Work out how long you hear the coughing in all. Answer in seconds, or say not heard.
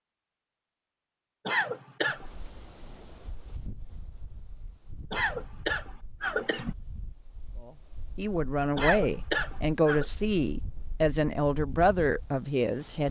4 s.